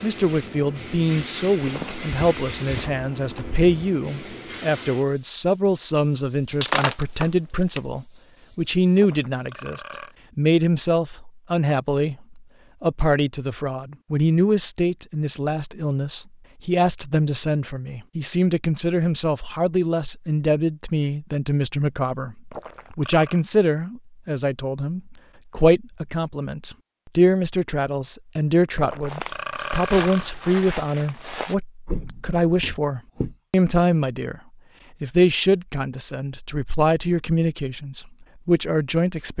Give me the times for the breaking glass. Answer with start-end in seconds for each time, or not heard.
6.5-7.8.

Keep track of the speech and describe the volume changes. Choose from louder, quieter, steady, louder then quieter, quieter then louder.
steady.